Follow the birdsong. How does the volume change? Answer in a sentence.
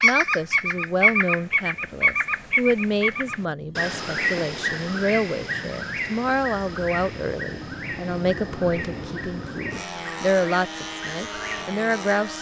The loudness of the birdsong goes down.